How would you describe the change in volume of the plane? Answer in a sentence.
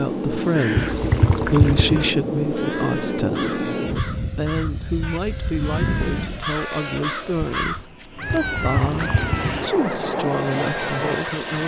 The loudness of the plane goes down, then up.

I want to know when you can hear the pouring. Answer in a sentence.
You can hear the pouring from 0.8 to 2.1 s and from 8.2 to 9.6 s.